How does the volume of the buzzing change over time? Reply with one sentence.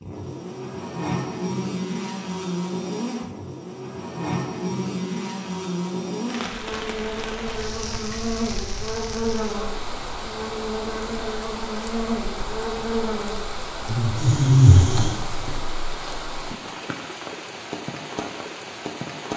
The loudness of the buzzing stays about the same.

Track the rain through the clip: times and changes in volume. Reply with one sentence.
You can hear the rain from 6.2 to 19.3 s, at a steady volume.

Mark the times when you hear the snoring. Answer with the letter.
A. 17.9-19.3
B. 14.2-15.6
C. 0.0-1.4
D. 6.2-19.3
B.